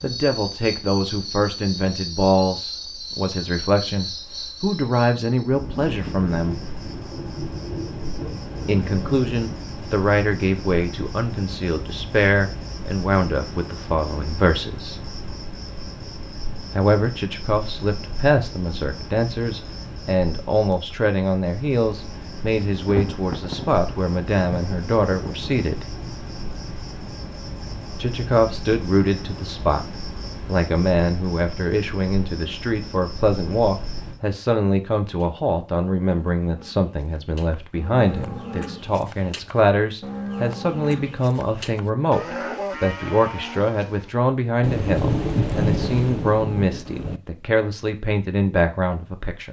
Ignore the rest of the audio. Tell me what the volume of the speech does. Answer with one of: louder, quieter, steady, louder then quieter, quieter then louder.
steady.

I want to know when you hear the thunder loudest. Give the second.
46 s.